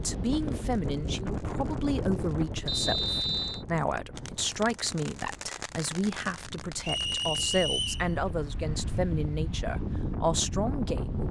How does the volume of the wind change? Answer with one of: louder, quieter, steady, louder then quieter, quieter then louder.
quieter then louder.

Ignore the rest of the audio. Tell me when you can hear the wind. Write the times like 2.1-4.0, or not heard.
0.0-11.2.